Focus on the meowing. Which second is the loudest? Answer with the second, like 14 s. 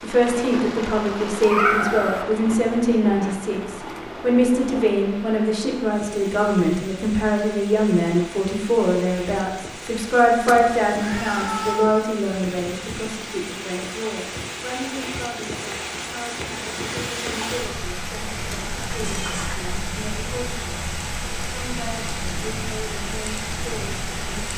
2 s.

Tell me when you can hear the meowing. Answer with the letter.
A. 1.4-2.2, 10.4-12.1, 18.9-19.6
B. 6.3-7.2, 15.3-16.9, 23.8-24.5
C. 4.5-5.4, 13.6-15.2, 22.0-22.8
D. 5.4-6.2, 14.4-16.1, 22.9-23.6
A.